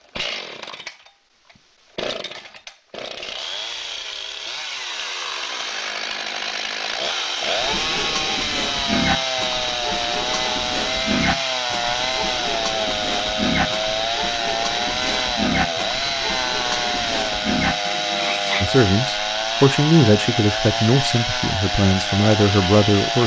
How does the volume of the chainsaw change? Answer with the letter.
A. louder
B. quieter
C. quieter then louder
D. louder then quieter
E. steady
A.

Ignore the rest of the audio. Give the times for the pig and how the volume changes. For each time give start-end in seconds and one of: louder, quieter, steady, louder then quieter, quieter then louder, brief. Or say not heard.
7.5-18.8 steady.